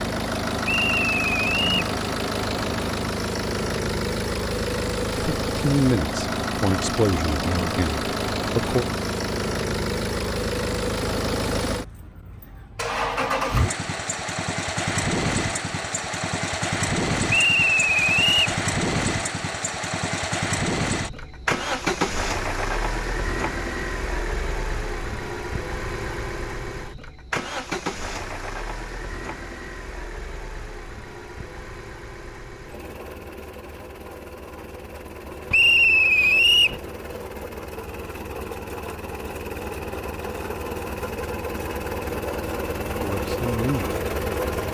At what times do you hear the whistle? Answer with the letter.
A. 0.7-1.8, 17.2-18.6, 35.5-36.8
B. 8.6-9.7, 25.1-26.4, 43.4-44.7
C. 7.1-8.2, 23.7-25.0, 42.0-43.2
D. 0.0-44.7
A.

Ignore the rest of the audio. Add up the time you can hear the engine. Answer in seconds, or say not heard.
45 s.